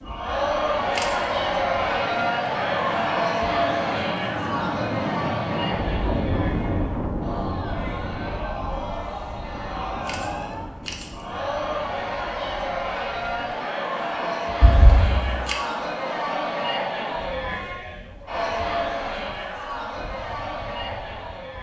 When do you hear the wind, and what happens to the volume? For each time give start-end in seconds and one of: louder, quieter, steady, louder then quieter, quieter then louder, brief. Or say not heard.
0.0-21.5 louder then quieter.